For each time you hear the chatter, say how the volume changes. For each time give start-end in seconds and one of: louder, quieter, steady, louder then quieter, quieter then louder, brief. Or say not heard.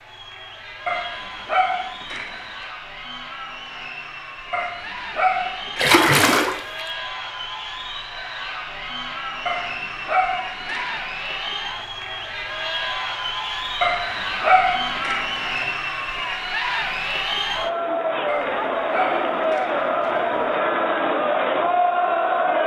0.0-22.6 louder.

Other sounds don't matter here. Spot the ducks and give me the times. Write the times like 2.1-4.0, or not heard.
not heard.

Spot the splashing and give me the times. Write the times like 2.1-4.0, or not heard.
5.8-6.8.